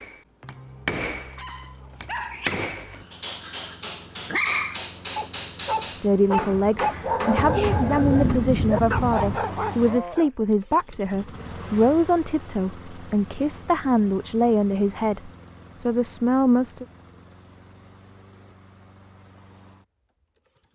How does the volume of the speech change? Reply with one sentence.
The loudness of the speech stays about the same.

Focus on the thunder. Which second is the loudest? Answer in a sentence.
The volume of the thunder peaks at 8 seconds.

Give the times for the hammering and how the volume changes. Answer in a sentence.
You can hear the hammering from 0.0 to 8.3 s, at a steady volume.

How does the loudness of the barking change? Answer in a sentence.
The loudness of the barking goes up.